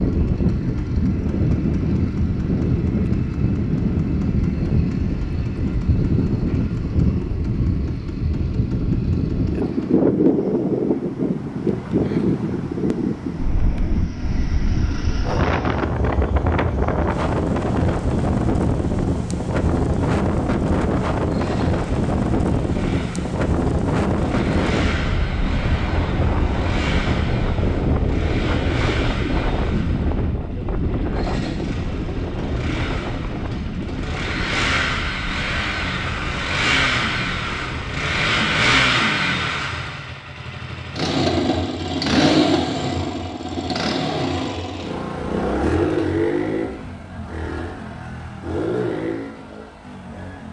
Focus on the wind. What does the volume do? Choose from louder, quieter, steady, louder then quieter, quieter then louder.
quieter.